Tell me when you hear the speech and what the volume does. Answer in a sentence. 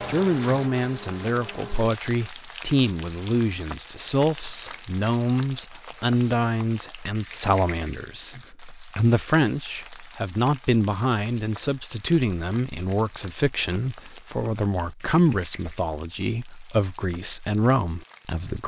The speech can be heard from 0.1 to 18.6 s, at a steady volume.